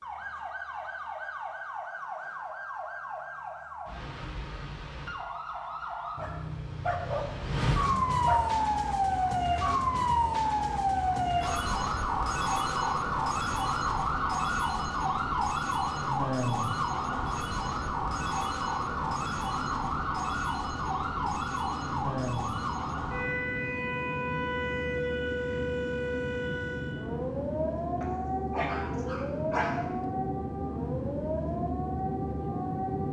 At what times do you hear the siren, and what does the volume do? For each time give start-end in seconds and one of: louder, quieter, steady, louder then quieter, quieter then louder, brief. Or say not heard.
0.0-33.0 louder then quieter.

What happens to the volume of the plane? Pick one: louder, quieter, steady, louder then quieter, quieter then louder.
louder.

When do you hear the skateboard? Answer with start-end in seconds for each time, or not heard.
not heard.